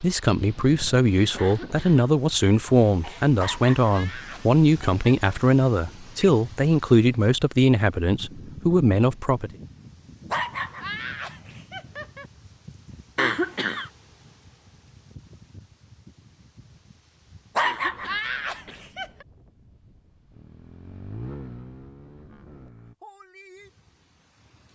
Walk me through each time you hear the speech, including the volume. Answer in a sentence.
You can hear the speech from 0.0 to 9.5 s, at a steady volume.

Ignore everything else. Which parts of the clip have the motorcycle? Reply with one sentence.
The motorcycle can be heard from 20.3 to 22.9 s.